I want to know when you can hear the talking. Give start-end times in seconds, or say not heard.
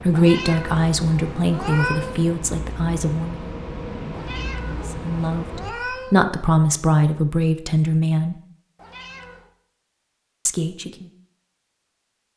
0.1-3.5, 4.8-8.3, 10.4-11.1.